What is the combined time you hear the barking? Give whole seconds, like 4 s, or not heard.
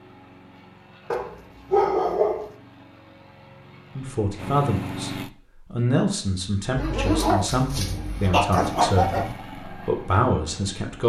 4 s.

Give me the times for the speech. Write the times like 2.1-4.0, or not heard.
4.0-11.0.